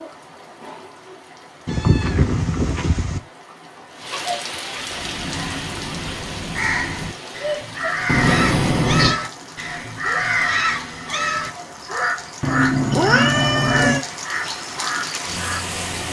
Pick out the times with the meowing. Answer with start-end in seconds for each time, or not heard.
1.6-3.2, 8.1-9.2, 12.4-14.1.